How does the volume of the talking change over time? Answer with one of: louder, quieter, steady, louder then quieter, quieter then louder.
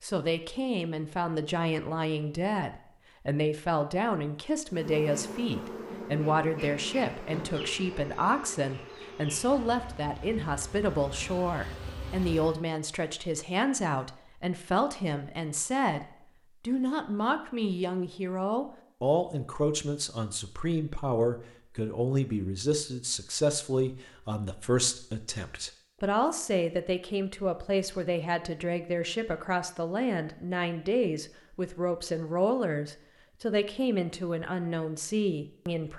steady.